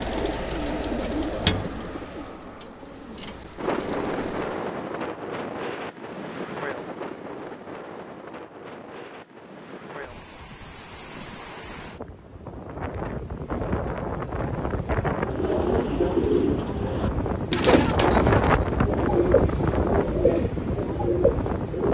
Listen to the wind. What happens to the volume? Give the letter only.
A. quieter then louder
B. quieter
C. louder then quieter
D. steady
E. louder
A.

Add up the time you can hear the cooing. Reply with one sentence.
The cooing can be heard for 11 seconds in total.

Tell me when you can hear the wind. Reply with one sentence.
You can hear the wind from 3.5 to 21.8 s.